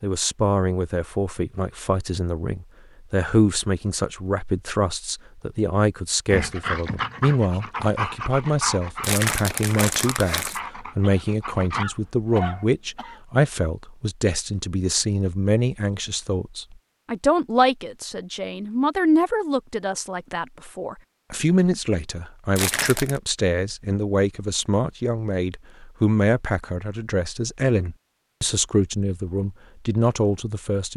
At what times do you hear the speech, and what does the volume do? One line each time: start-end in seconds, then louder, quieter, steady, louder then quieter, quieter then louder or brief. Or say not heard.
0.0-30.9 steady.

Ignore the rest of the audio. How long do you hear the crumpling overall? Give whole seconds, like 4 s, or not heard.
2 s.